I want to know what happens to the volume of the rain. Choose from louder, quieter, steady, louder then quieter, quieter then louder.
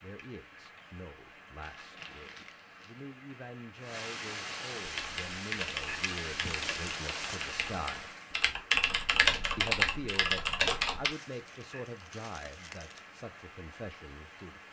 louder then quieter.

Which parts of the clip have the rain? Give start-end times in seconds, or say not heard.
0.0-14.6.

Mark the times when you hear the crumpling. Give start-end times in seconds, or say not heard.
1.6-3.1, 6.5-7.4, 11.1-13.1.